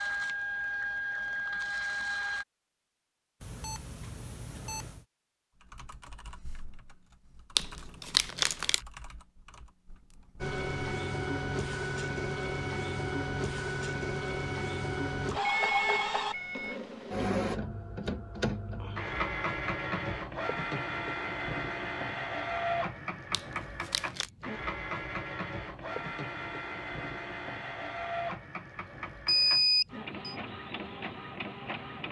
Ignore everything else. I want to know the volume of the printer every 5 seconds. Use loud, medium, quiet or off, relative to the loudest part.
loud, off, loud, loud, loud, medium, medium.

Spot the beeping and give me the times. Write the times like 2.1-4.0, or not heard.
3.4-5.0, 15.4-16.8, 29.2-30.4.